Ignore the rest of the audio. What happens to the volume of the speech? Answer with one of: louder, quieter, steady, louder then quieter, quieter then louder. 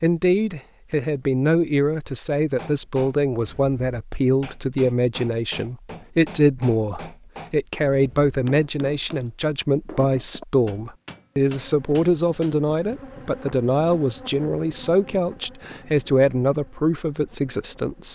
steady.